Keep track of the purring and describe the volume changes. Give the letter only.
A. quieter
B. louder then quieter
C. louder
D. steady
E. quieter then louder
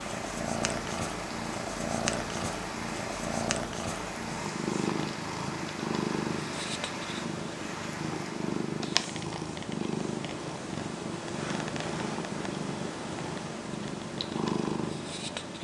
D.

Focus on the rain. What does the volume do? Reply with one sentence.
The loudness of the rain stays about the same.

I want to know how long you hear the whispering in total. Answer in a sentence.
The whispering can't be heard in this clip.